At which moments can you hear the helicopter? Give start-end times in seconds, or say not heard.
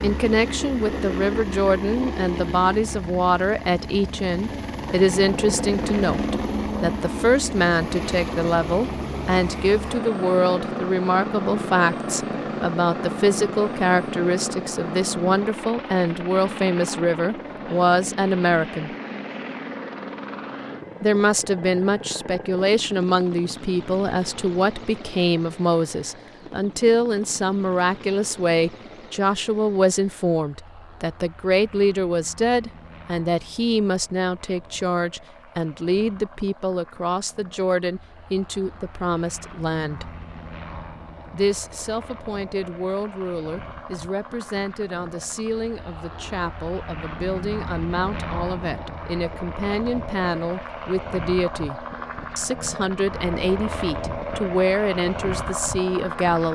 0.0-56.4.